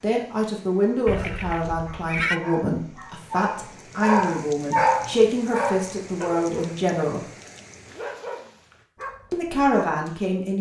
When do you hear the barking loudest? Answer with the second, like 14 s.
5 s.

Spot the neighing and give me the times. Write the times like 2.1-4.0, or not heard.
1.1-2.4.